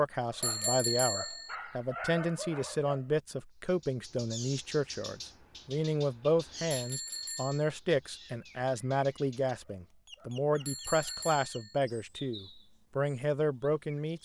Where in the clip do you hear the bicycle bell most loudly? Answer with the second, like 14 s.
1 s.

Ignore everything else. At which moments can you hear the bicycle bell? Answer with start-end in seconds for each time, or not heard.
0.4-1.6, 6.7-7.7, 10.7-11.8.